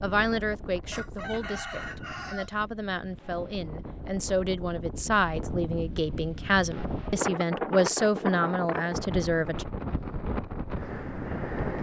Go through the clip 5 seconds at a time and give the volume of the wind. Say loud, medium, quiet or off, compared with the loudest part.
medium, loud, loud.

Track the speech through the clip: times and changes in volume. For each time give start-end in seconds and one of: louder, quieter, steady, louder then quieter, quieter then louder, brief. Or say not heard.
0.0-9.7 louder.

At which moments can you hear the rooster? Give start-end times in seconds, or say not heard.
0.9-2.5.